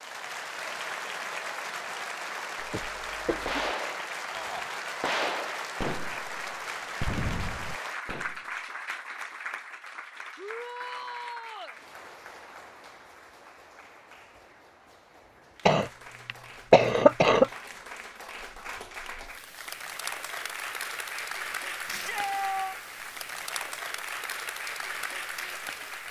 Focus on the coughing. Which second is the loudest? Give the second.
17 s.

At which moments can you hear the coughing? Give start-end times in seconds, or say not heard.
2.6-3.6, 15.7-17.5.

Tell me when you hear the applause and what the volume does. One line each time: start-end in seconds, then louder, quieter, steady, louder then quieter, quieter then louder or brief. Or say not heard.
0.0-26.0 quieter then louder.